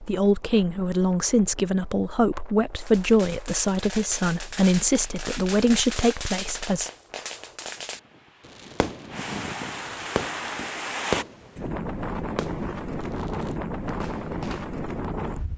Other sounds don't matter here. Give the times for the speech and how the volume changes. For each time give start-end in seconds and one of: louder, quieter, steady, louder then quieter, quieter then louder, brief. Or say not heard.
0.0-6.9 steady.